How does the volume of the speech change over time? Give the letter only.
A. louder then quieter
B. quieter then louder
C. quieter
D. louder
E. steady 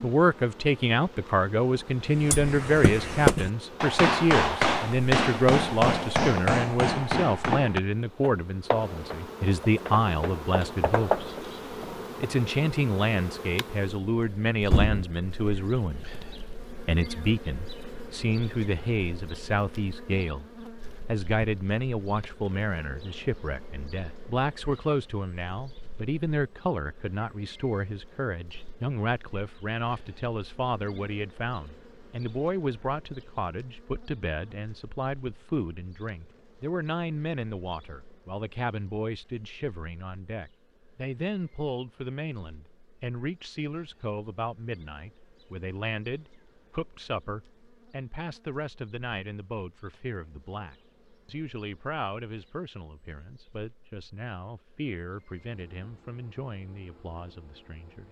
C.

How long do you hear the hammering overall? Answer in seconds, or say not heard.
10 s.